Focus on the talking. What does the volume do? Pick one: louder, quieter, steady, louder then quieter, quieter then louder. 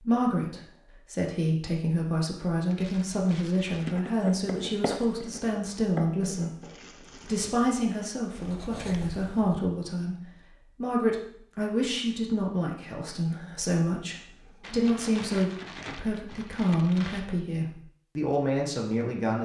steady.